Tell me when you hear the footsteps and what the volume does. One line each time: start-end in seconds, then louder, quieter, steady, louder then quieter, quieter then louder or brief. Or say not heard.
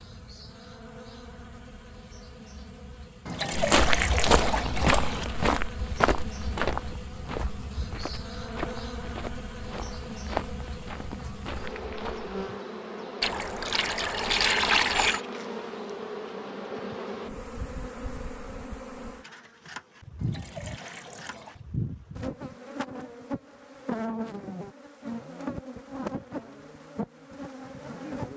3.5-12.3 quieter then louder.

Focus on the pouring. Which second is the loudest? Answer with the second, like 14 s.
15 s.